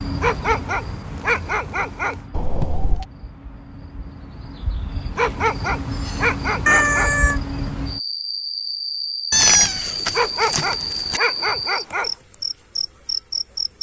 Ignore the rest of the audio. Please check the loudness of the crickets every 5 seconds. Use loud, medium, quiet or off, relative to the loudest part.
medium, loud, loud.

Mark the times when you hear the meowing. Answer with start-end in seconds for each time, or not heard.
2.3-3.0, 6.7-7.4, 9.3-11.2.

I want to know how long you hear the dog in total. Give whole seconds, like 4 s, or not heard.
6 s.